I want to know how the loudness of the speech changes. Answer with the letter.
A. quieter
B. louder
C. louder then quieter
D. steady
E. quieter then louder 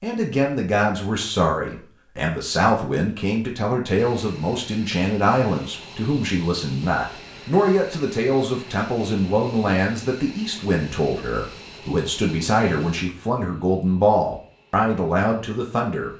D.